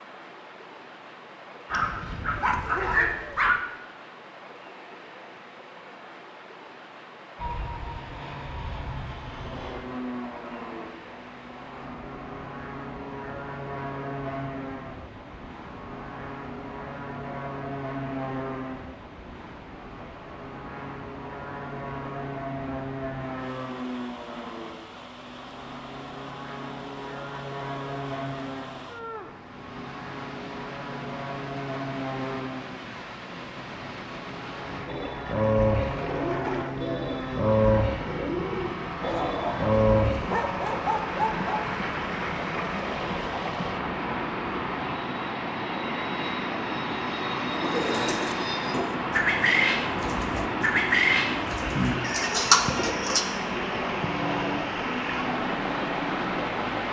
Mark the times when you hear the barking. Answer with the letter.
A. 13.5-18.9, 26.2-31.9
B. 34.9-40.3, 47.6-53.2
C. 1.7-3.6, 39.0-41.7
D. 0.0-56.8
C.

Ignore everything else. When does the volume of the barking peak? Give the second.
3 s.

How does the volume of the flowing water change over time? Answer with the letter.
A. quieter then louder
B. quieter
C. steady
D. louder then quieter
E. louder
E.